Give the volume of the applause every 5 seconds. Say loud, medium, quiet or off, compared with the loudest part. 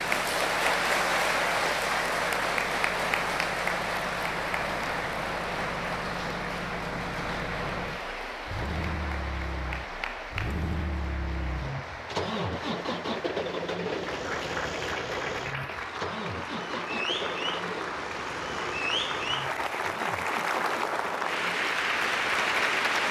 loud, medium, medium, medium, loud.